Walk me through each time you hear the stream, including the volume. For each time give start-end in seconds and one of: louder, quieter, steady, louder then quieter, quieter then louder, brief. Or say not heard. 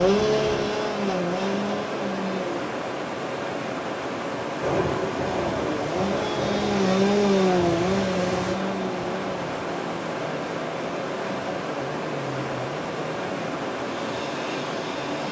0.0-15.2 steady.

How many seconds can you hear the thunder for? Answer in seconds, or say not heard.
4 s.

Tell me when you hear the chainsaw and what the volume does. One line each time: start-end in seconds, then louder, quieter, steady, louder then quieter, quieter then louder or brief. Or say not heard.
0.0-2.6 brief
5.2-15.2 quieter.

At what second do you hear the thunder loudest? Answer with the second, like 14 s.
5 s.